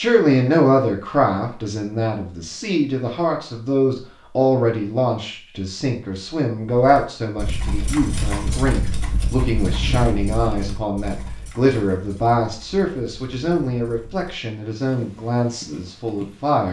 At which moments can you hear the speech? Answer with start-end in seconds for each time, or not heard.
0.0-16.6.